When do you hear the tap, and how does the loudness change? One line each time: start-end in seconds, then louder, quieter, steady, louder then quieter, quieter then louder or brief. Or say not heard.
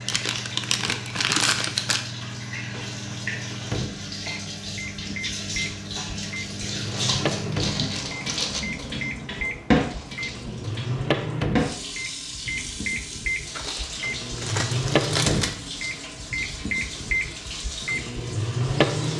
0.0-19.1 louder then quieter.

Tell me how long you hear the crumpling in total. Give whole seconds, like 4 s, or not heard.
6 s.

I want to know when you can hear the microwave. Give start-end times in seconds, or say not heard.
0.0-19.1.